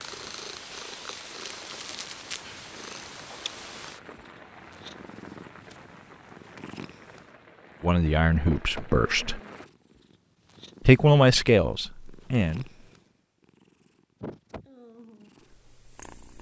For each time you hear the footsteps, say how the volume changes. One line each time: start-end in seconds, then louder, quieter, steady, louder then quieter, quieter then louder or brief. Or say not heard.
not heard.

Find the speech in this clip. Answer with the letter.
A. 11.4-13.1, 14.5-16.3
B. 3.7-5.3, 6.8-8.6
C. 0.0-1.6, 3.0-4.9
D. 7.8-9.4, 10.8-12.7
D.